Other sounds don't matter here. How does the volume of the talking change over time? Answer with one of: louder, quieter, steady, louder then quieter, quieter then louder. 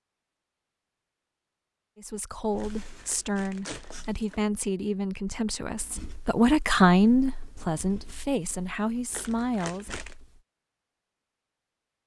louder then quieter.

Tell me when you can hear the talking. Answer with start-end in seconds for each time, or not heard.
1.9-9.9.